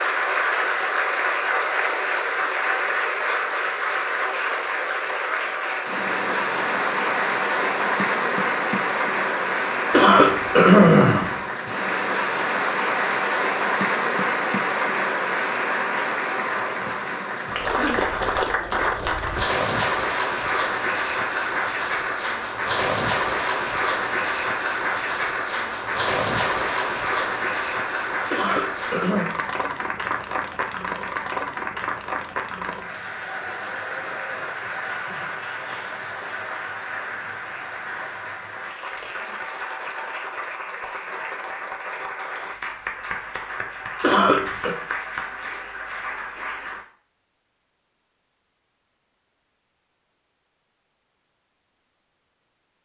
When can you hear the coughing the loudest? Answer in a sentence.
The volume of the coughing peaks at 11 seconds.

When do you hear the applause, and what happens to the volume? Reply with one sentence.
The applause can be heard from 0.0 to 46.9 s, getting quieter.